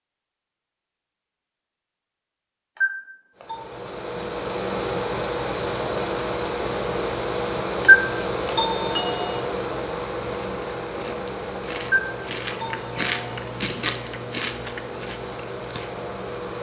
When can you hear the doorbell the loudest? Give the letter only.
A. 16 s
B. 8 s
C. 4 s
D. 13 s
B.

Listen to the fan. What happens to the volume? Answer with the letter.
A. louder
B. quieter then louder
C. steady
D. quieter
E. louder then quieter
D.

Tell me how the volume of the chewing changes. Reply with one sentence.
The loudness of the chewing goes up, then down.